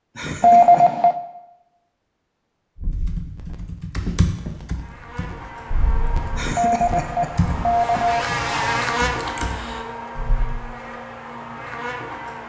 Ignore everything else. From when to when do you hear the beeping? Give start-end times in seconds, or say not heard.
0.4-1.1, 6.5-8.2.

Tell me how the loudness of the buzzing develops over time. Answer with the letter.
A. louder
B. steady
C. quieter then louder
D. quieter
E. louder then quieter
E.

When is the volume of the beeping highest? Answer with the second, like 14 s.
1 s.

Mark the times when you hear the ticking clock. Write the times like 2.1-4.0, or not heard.
not heard.